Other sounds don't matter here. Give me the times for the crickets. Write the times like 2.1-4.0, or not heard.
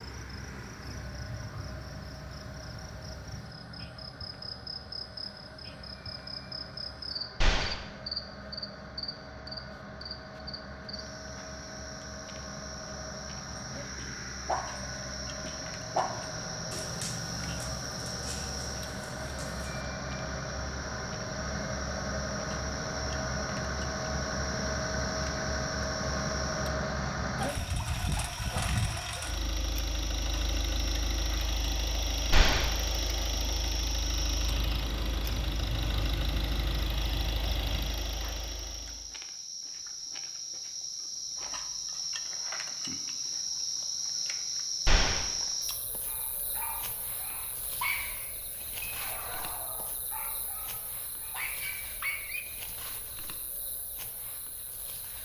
0.0-55.2.